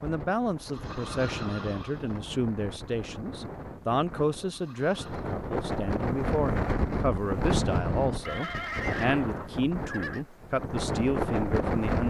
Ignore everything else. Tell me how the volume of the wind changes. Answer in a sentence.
The volume of the wind goes up.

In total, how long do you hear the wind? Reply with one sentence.
You can hear the wind for 12 seconds altogether.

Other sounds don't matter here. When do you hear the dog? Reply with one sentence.
The dog can't be heard in this clip.